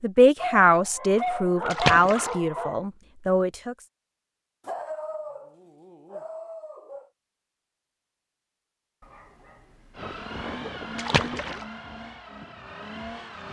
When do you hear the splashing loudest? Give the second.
2 s.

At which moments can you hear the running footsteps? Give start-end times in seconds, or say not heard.
not heard.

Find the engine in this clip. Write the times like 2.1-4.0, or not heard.
9.9-13.4.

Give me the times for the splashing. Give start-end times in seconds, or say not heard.
1.7-2.4, 10.9-11.7.